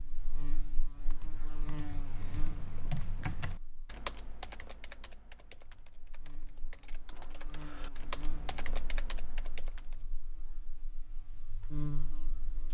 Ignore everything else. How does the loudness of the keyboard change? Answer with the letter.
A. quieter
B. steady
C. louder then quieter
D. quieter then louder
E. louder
D.